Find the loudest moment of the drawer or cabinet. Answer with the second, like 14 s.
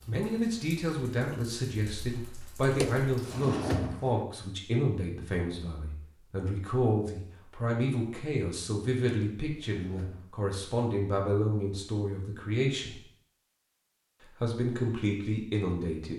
4 s.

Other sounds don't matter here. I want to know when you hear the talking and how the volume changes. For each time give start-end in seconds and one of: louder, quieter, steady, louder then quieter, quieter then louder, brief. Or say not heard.
0.1-13.0 steady
14.3-16.1 brief.